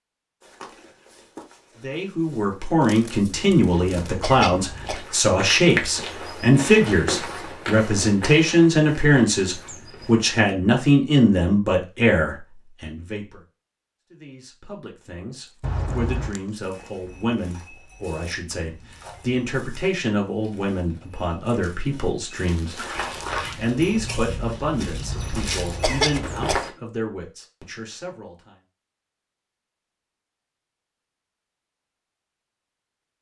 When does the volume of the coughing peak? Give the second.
26 s.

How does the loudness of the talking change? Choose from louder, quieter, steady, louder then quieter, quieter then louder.
quieter.